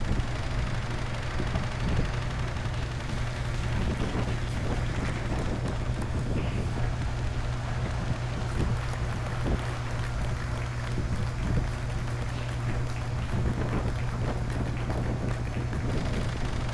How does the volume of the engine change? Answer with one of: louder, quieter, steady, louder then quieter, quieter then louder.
steady.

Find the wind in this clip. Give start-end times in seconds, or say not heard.
0.0-16.6.